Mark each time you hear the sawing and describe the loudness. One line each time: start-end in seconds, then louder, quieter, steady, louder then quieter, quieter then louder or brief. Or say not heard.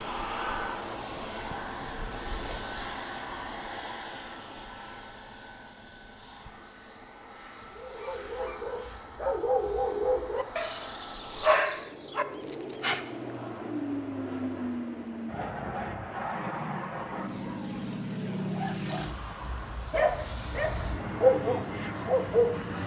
not heard.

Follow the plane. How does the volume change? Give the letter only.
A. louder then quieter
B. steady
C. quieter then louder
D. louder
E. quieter
C.